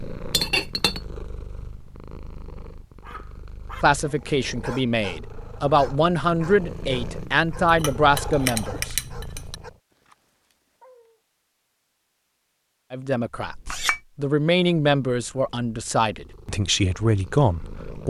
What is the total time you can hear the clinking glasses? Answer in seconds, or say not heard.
3 s.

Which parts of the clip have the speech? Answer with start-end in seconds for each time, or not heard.
3.8-8.9, 12.9-18.0.